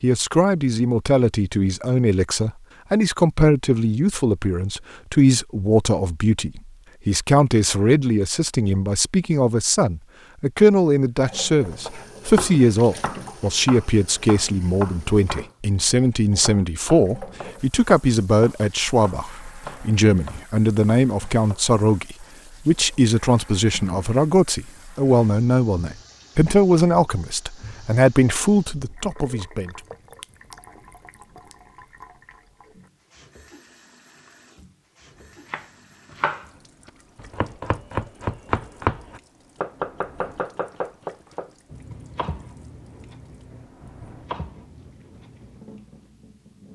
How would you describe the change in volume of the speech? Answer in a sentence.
The volume of the speech stays about the same.